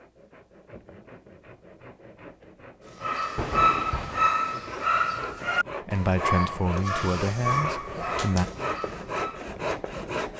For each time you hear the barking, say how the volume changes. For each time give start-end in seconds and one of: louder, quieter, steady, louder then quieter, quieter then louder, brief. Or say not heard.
3.0-9.5 quieter.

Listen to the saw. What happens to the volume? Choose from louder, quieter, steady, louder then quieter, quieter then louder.
louder.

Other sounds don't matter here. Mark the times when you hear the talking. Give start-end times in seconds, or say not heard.
5.8-8.5.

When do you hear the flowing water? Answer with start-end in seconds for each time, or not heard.
not heard.